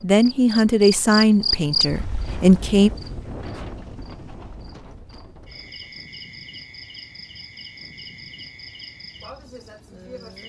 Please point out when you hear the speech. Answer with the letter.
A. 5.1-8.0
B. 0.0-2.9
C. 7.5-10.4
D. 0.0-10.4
B.